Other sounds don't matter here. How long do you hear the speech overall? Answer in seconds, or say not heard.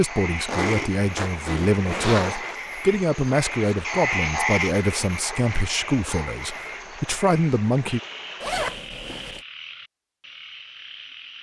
8 s.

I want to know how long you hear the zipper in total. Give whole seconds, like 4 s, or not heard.
3 s.